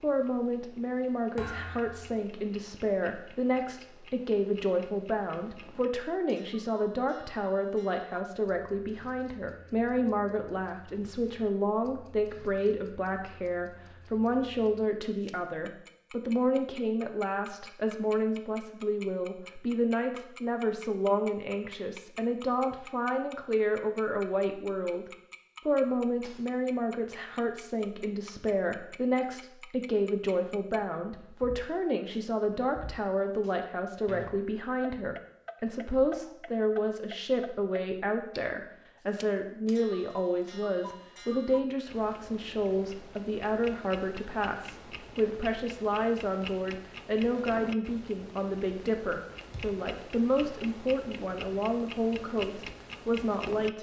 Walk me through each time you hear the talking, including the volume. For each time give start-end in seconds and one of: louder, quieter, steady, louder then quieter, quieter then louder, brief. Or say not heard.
0.0-25.1 steady
25.6-53.7 steady.